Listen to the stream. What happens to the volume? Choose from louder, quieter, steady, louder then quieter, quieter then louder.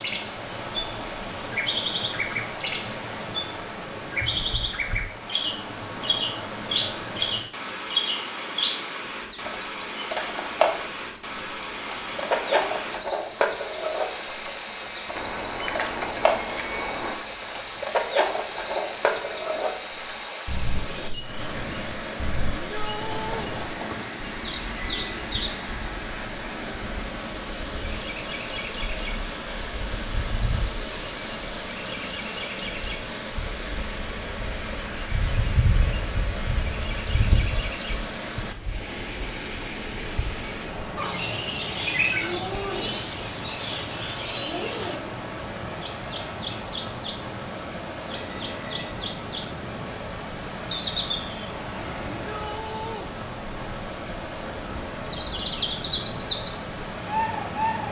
steady.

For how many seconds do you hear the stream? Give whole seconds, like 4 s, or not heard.
58 s.